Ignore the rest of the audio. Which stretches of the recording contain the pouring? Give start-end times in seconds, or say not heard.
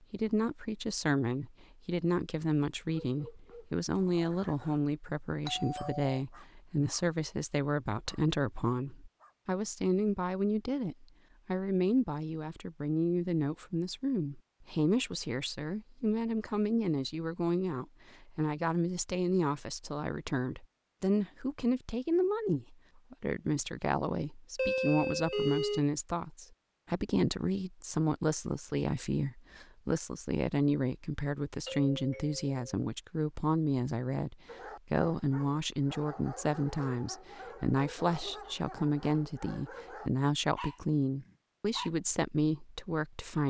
not heard.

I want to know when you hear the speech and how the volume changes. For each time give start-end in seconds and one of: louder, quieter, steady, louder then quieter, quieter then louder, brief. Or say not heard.
0.1-43.4 steady.